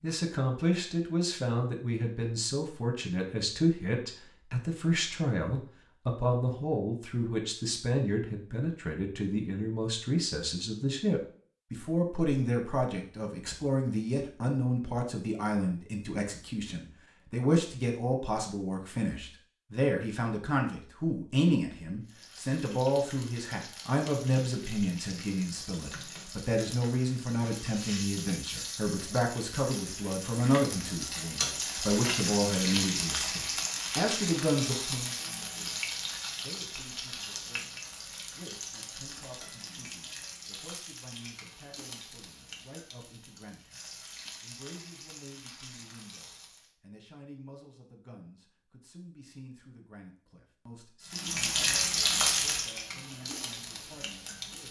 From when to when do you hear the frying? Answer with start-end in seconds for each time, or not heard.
22.1-46.7, 51.0-54.6.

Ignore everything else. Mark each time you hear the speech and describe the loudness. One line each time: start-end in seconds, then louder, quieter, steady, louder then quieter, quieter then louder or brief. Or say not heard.
0.0-54.6 quieter.